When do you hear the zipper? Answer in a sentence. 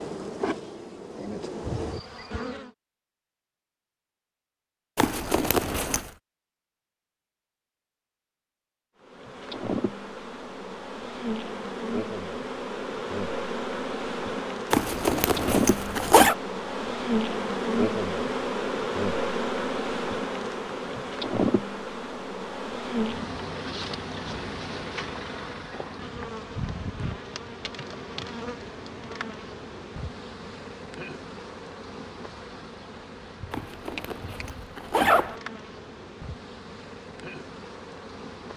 The zipper can be heard from 5.0 to 6.0 s, from 14.7 to 16.4 s and from 33.5 to 35.4 s.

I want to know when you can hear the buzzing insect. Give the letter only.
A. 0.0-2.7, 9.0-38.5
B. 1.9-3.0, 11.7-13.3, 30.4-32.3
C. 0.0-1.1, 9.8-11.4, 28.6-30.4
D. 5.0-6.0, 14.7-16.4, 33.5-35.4
A.